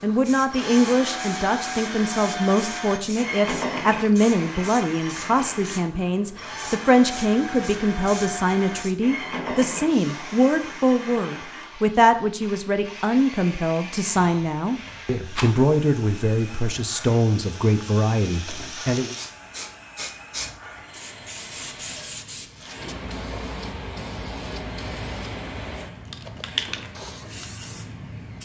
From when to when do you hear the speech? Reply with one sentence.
The speech can be heard from 0.0 to 19.1 s.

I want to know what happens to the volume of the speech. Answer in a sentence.
The volume of the speech stays about the same.